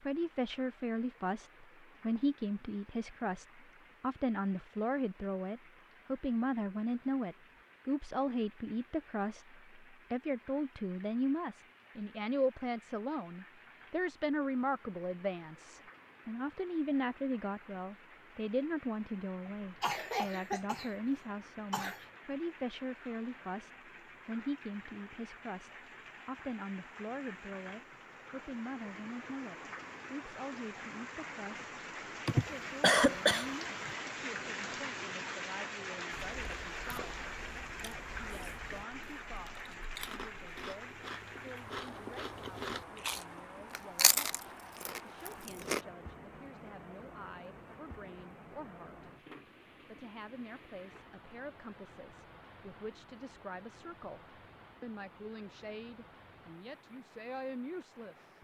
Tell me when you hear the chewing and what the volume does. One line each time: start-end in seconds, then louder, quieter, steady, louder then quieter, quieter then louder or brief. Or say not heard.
36.2-45.9 louder.